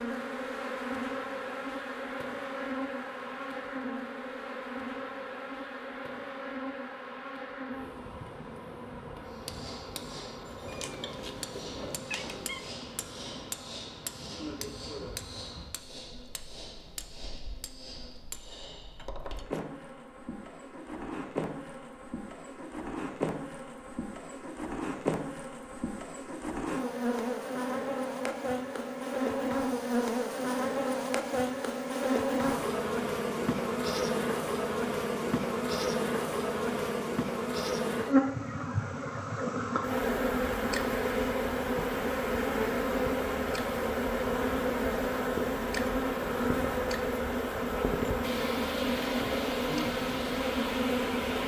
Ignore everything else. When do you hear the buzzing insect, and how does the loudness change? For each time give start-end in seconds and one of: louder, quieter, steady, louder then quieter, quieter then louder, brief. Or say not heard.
0.0-51.4 quieter then louder.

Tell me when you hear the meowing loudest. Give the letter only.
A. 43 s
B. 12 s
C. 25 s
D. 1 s
B.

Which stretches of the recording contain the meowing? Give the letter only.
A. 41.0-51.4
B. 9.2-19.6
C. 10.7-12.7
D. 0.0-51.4
C.